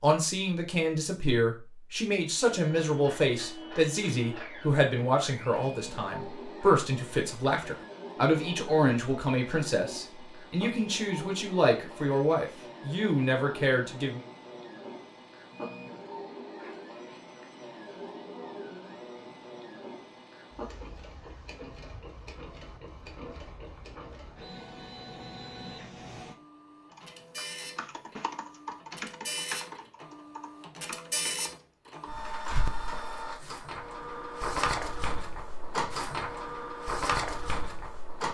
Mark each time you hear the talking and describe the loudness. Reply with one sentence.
You can hear the talking from 0.0 to 14.2 s, at a steady volume.